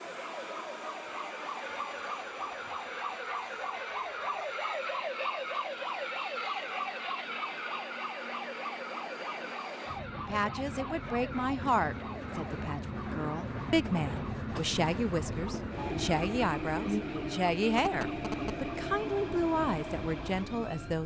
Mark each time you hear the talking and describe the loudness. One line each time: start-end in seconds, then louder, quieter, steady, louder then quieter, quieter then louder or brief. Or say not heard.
10.2-21.0 steady.